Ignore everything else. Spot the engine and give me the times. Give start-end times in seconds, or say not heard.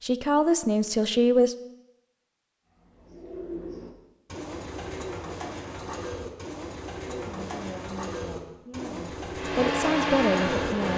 9.3-10.9.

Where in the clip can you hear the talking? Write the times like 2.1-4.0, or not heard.
0.0-1.6, 7.0-10.9.